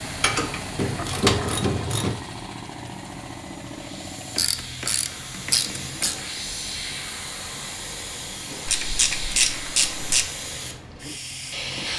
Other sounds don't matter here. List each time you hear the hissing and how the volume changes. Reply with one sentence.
The hissing can be heard from 0.0 to 11.9 s, getting louder.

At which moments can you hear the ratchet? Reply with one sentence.
The ratchet can be heard from 0.2 to 2.2 s, from 4.3 to 6.2 s and from 8.7 to 10.2 s.